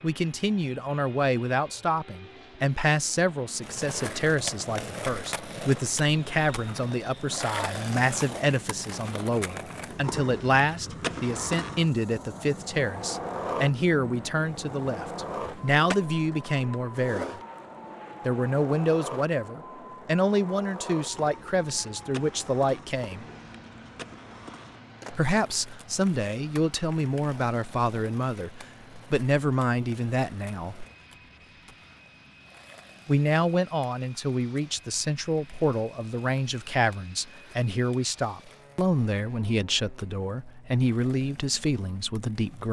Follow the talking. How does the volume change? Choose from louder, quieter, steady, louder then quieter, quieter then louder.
steady.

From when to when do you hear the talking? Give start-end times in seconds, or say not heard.
0.0-17.4, 18.2-23.2, 25.1-30.9, 33.0-42.6.